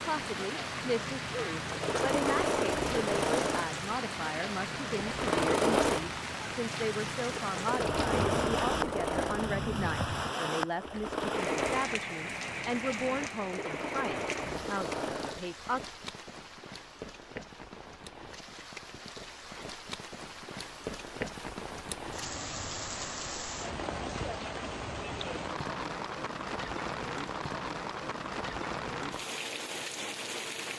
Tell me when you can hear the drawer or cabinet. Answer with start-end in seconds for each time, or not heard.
7.8-10.3.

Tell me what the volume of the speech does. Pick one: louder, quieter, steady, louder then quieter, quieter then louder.
steady.